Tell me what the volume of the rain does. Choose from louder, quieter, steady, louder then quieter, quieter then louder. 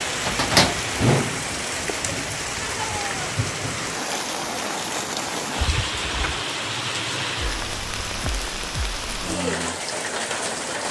steady.